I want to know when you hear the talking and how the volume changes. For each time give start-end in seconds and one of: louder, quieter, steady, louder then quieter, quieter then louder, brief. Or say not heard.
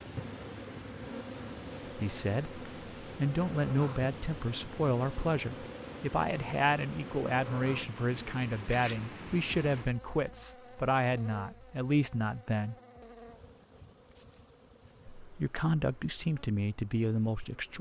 1.9-12.8 steady
15.2-17.7 brief.